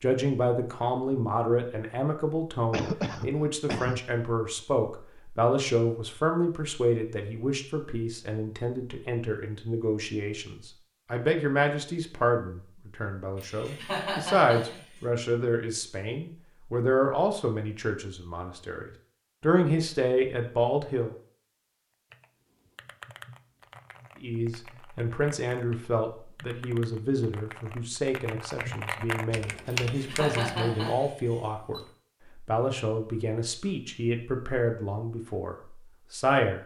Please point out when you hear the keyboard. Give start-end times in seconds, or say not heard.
22.1-30.7.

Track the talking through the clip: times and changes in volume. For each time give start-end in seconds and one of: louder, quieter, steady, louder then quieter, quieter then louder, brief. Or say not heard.
0.0-21.1 steady
24.2-36.6 steady.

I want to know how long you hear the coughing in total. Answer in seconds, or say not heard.
5 s.